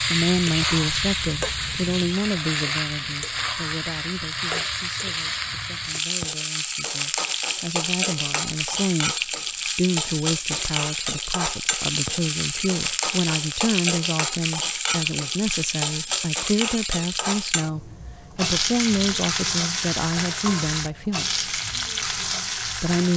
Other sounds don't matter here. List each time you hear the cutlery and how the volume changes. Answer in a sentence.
You can't hear the cutlery here.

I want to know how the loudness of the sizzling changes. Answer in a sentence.
The loudness of the sizzling stays about the same.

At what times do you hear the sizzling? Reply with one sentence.
You can hear the sizzling from 0.0 to 23.1 s.